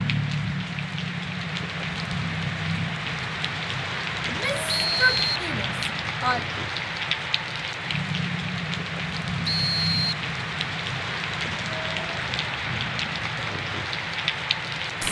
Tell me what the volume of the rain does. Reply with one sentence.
The volume of the rain stays about the same.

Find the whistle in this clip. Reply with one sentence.
You can hear the whistle from 4.7 to 5.3 s and from 9.4 to 10.2 s.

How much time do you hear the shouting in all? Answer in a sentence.
You can hear the shouting for 2 seconds altogether.